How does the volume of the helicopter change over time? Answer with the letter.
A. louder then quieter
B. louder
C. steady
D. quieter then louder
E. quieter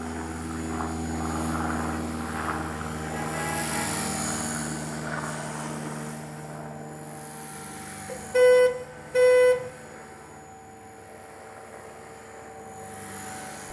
E.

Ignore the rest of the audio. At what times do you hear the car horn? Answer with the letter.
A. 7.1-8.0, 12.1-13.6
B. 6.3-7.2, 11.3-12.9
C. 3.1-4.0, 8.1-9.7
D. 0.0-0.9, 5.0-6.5
C.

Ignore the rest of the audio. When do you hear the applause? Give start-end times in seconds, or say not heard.
not heard.